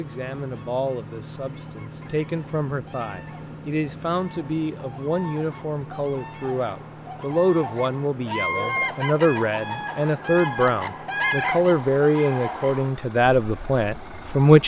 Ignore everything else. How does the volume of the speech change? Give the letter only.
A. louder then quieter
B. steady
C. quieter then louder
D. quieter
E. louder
E.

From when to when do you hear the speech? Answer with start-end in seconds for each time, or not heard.
0.0-14.6.